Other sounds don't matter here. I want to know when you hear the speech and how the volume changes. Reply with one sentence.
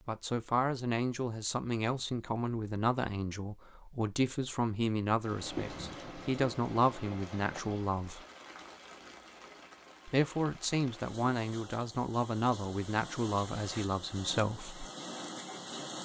The speech can be heard from 0.1 to 8.2 s, at a steady volume; and from 10.1 to 14.8 s, at a steady volume.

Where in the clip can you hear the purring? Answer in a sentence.
The purring can't be heard in this clip.